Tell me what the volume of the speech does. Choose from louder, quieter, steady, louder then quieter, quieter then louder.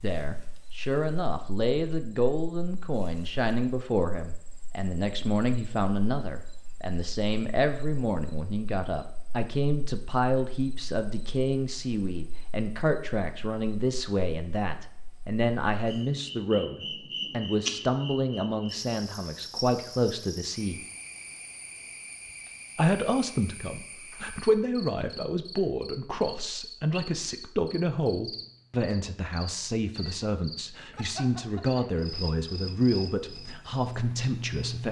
steady.